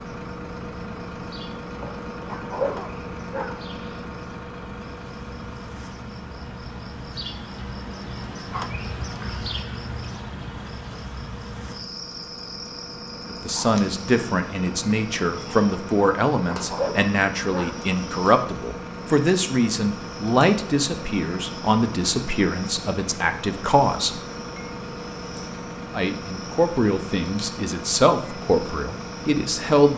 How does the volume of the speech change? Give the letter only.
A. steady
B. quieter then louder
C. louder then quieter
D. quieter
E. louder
A.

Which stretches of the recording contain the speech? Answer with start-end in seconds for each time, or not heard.
13.2-24.2, 25.9-29.9.